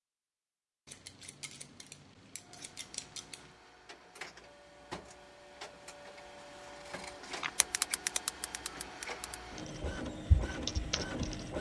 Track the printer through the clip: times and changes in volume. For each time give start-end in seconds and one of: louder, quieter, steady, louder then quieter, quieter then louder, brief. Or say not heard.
2.4-11.5 louder.